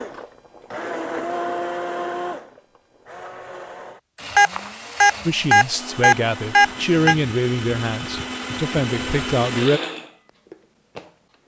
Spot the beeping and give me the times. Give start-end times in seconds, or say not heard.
4.3-7.2.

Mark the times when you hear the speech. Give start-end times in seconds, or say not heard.
5.2-9.8.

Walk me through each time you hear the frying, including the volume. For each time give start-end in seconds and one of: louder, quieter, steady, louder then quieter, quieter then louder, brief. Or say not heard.
not heard.